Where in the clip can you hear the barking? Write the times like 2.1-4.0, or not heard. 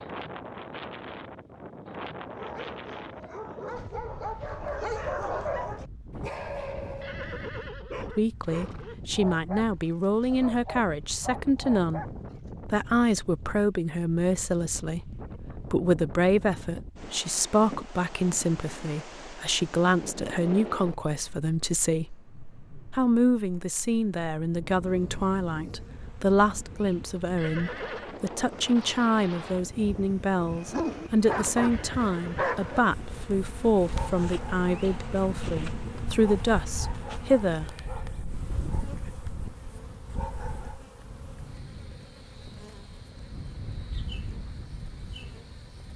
2.2-12.5, 30.4-40.9.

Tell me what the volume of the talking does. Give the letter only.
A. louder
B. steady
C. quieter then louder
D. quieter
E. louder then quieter
B.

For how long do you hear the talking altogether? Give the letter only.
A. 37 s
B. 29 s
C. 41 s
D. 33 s
B.